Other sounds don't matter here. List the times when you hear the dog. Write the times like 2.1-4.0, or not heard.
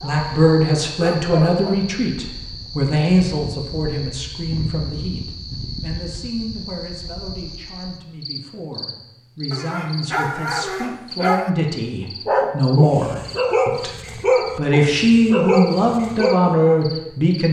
0.0-1.8, 9.5-16.6.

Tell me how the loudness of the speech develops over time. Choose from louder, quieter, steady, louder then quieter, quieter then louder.
quieter then louder.